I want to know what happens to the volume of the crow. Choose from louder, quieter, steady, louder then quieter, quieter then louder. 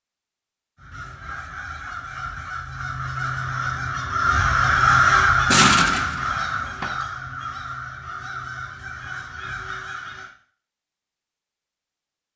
louder then quieter.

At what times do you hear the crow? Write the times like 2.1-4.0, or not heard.
0.8-10.3.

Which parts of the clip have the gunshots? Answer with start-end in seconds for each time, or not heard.
5.5-6.9.